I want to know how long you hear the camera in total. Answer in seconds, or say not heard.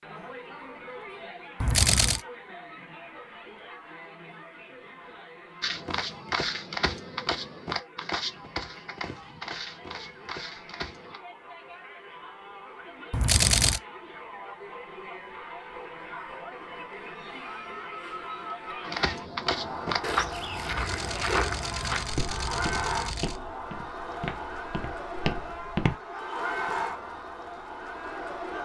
4 s.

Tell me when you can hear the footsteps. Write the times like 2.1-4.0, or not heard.
5.6-11.2, 18.9-25.9.